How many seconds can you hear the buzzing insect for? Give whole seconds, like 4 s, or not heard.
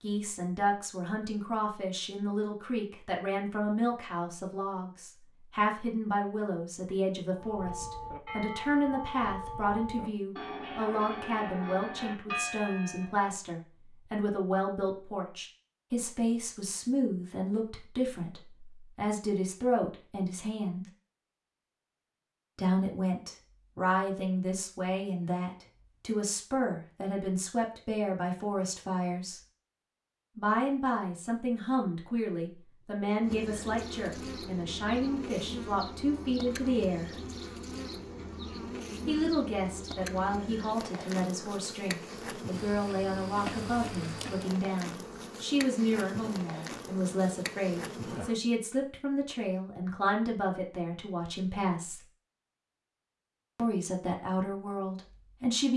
15 s.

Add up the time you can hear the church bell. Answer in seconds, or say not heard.
6 s.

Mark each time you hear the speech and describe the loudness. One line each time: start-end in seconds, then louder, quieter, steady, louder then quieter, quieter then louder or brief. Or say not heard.
0.0-20.9 steady
22.6-29.4 steady
30.4-37.0 steady
39.0-52.0 steady
53.5-55.7 brief.